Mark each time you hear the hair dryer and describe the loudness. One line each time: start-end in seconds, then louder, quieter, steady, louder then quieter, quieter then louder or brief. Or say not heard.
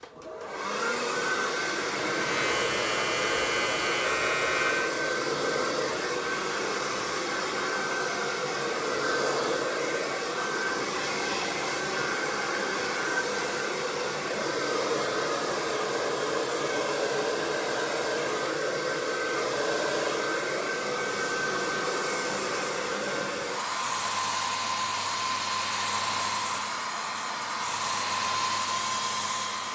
0.0-29.6 steady.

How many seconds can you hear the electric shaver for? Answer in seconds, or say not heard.
3 s.